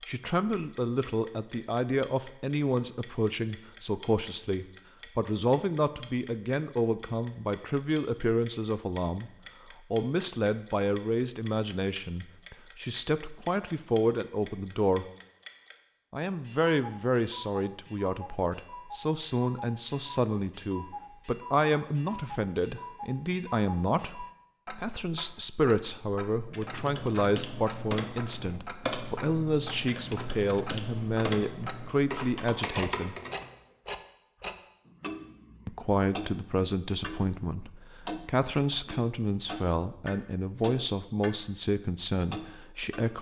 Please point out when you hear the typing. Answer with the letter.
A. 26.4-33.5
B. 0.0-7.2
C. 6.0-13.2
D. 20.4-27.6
A.